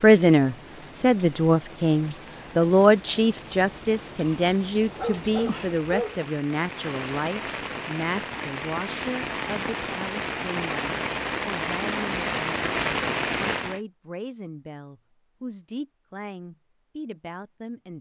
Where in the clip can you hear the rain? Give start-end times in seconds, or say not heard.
0.0-13.8.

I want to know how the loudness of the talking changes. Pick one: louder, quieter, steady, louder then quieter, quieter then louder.
quieter.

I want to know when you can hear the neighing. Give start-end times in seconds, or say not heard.
not heard.